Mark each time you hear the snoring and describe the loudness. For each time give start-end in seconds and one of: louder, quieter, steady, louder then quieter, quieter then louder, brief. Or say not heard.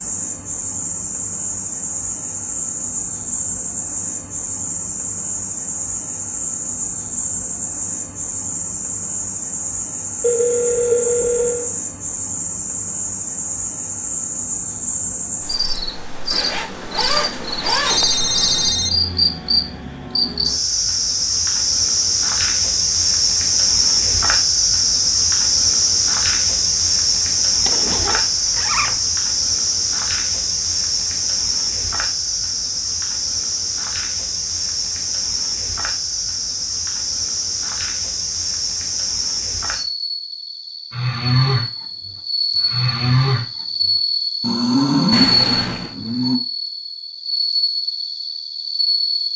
40.9-46.4 steady.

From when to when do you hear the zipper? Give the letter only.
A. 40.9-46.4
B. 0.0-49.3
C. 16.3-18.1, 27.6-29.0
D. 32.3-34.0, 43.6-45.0
C.